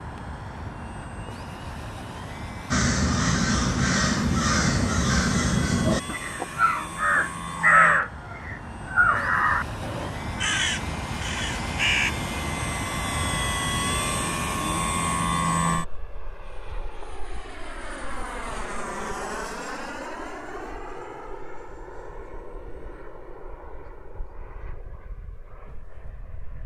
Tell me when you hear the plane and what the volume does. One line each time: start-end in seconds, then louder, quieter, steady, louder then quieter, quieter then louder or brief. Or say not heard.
0.0-26.6 louder then quieter.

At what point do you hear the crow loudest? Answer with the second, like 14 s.
8 s.